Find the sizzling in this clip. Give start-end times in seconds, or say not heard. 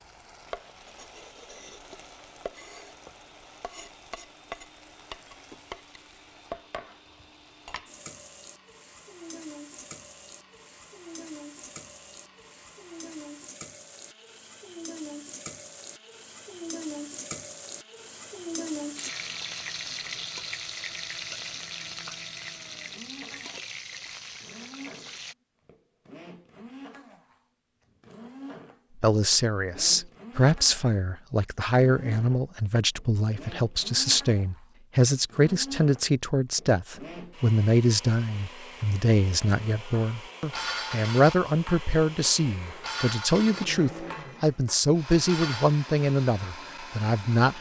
0.0-25.4.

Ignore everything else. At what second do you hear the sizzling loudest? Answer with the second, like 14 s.
19 s.